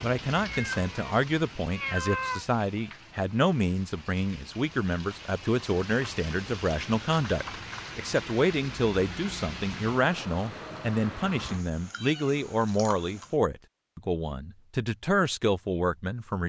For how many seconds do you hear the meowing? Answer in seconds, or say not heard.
4 s.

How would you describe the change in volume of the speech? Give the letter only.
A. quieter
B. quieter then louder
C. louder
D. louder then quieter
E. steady
E.